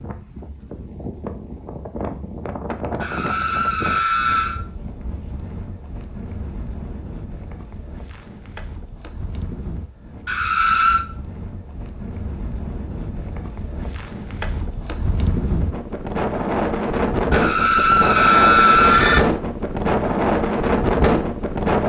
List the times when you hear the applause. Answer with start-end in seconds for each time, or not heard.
not heard.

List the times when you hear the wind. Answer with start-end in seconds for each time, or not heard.
0.0-21.8.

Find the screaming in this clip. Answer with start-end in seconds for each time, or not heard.
3.0-4.6, 10.2-11.1, 17.3-19.2.